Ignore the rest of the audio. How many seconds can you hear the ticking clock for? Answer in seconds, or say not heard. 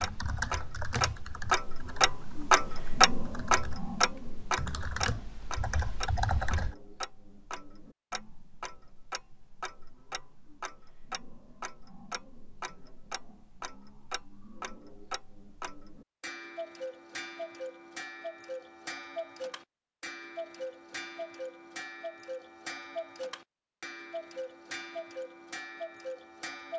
27 s.